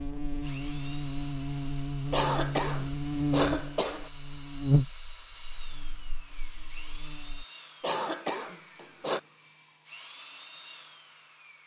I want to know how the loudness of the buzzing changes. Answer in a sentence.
The loudness of the buzzing goes up, then down.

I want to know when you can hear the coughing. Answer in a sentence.
You can hear the coughing from 2.1 to 4.1 s and from 7.8 to 9.2 s.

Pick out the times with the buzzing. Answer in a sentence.
You can hear the buzzing from 0.0 to 7.5 s.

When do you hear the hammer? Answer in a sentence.
The hammer can't be heard in this clip.